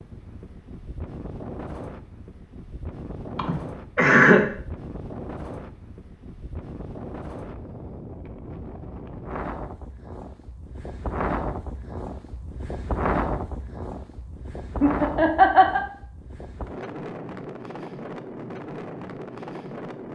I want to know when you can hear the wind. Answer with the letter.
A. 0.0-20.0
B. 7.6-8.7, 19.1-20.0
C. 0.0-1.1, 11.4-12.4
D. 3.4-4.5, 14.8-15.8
A.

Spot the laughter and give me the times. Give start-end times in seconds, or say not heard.
3.4-4.5, 14.8-15.8.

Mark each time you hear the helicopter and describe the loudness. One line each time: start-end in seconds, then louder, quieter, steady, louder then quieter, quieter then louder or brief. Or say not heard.
not heard.